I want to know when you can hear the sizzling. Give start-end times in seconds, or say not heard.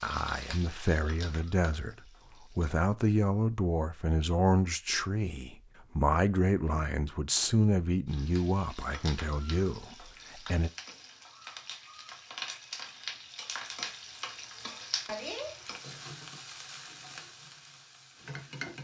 0.0-2.8, 8.1-18.7.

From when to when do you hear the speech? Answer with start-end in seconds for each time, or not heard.
0.0-1.9, 2.5-10.7.